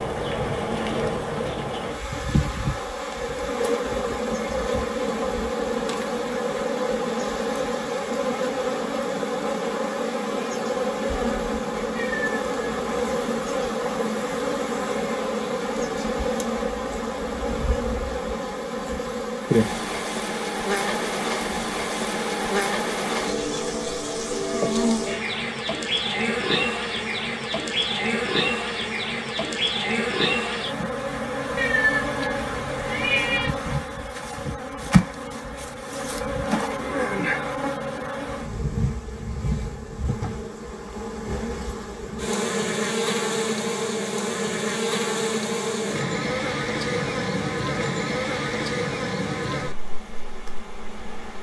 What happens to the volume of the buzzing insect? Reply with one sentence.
The loudness of the buzzing insect stays about the same.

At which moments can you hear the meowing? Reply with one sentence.
You can hear the meowing from 11.9 to 13.1 s and from 31.6 to 33.5 s.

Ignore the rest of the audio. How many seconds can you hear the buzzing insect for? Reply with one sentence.
The buzzing insect can be heard for 51 seconds in total.